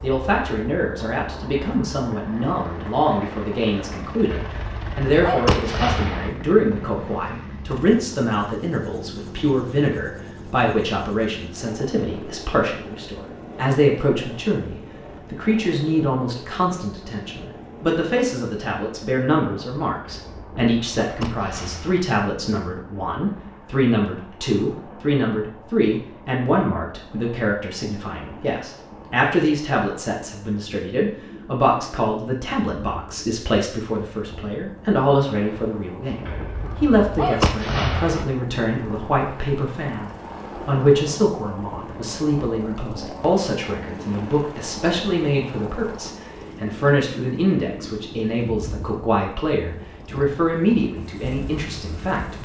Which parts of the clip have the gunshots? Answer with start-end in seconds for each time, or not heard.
4.3-6.3, 20.0-22.1, 36.2-38.2.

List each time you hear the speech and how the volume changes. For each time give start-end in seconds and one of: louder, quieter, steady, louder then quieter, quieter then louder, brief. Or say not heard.
0.0-52.4 steady.